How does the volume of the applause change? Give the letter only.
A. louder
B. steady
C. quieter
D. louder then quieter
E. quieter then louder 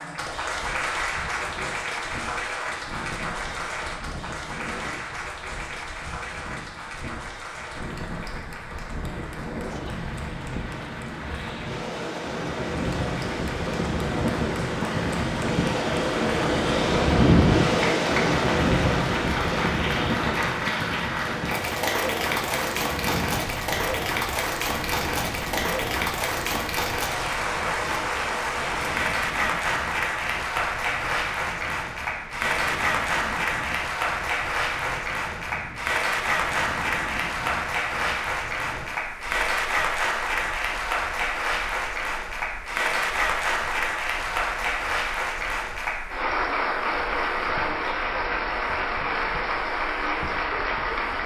A.